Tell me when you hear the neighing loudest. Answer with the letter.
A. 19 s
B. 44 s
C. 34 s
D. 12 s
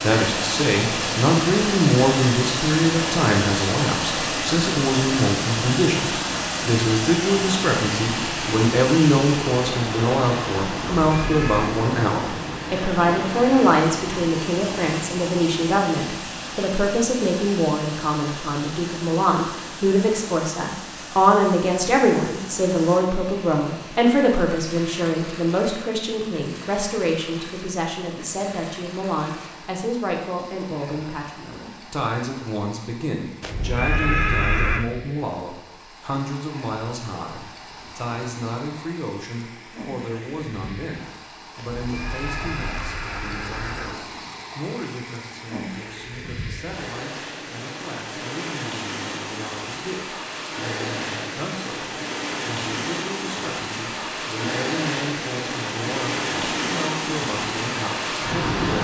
C.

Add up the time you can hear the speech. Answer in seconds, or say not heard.
59 s.